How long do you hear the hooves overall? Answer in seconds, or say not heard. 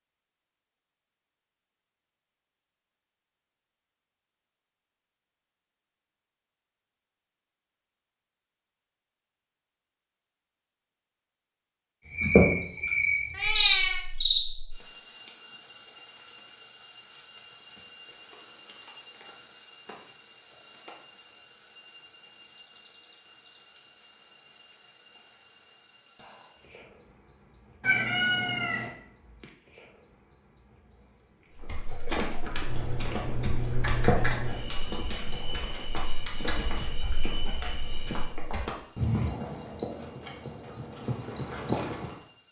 11 s.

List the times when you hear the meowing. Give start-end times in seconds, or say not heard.
13.3-14.1, 27.8-28.9.